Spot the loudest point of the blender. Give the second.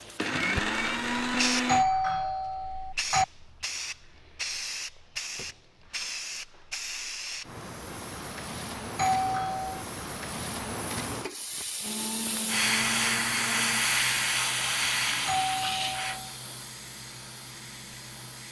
1 s.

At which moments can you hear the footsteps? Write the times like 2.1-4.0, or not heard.
not heard.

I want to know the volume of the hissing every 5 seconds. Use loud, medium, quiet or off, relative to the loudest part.
medium, medium, loud, medium.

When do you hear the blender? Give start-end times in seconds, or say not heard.
0.0-1.9, 11.8-16.0.